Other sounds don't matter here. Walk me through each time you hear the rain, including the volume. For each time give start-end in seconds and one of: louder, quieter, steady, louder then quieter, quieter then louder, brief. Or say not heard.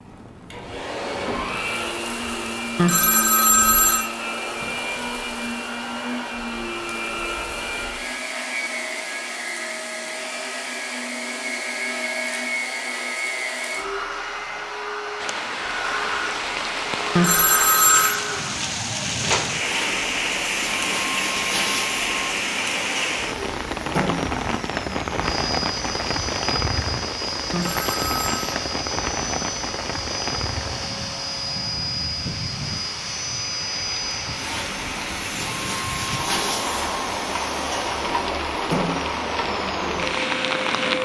15.2-41.0 quieter then louder.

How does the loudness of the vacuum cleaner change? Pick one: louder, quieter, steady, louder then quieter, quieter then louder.
steady.